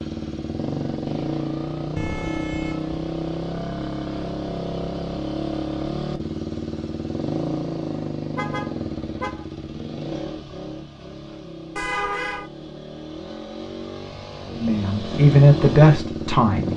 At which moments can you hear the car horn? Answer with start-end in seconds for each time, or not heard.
1.9-3.0, 8.3-9.4, 11.8-12.5.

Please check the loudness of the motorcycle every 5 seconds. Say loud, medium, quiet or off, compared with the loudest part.
loud, loud, medium, loud.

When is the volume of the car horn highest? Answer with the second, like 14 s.
12 s.